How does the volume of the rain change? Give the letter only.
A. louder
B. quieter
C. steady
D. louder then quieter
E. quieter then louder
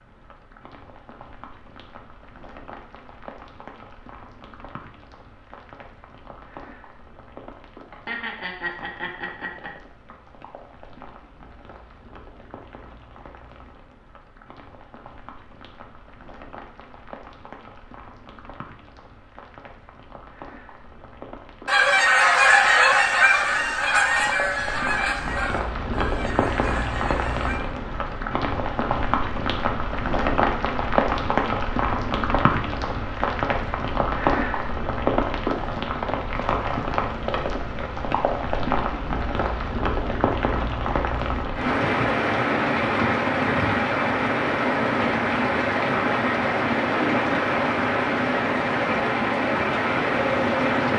A.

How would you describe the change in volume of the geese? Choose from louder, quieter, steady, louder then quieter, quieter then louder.
quieter.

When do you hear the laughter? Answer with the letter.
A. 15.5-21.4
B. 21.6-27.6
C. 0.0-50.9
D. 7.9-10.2
D.